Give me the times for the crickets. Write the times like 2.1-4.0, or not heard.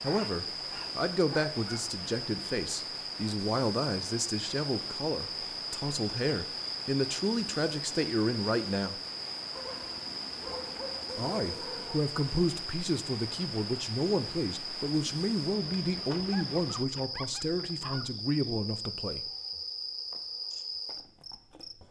0.0-21.8.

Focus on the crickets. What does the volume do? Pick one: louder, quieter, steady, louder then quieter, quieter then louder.
steady.